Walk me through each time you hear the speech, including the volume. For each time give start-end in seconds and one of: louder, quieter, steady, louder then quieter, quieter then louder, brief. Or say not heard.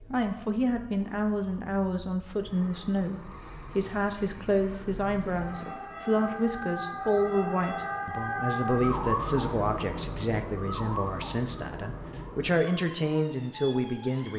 0.1-14.3 steady.